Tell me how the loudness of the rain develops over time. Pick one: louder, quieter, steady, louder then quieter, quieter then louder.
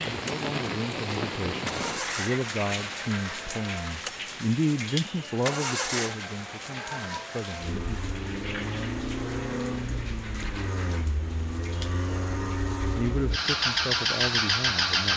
quieter.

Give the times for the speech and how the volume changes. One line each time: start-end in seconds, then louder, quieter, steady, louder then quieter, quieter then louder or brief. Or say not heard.
0.1-8.0 louder then quieter
12.9-15.1 brief.